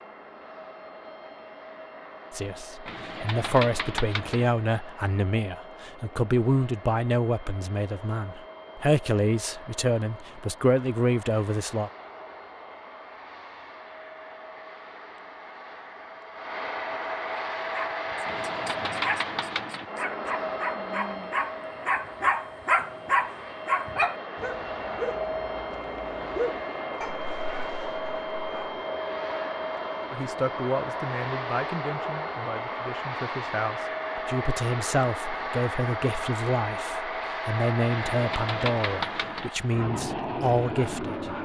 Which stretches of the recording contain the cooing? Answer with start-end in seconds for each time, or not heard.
2.9-4.5, 18.2-19.9, 37.9-39.5.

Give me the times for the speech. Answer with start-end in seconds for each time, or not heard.
2.3-11.9, 30.1-41.4.